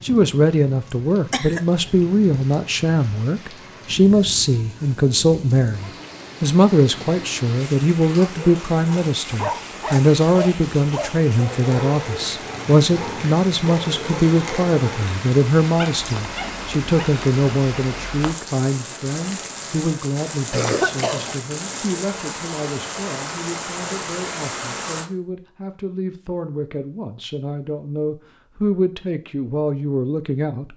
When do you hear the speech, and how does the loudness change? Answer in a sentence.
The speech can be heard from 0.0 to 30.7 s, getting quieter.